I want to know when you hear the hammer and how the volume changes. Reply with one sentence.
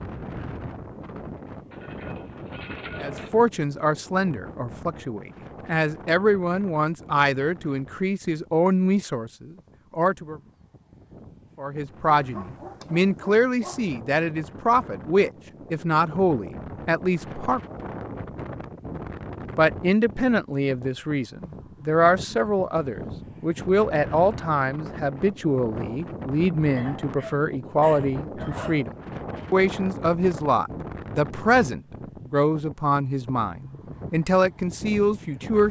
The hammer can't be heard in this clip.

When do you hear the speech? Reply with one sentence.
You can hear the speech from 3.0 to 10.4 s, from 11.6 to 17.6 s and from 19.6 to 35.6 s.